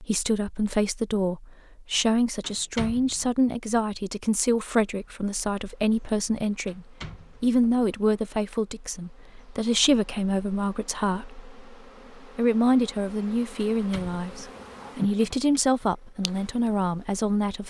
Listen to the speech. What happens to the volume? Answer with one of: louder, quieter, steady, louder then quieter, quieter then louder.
steady.